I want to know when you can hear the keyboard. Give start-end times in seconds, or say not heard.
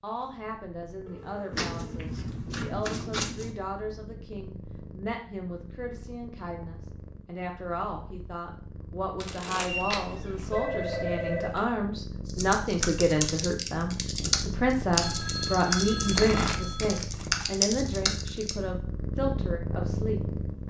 12.2-18.6.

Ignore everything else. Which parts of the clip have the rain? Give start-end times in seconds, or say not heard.
not heard.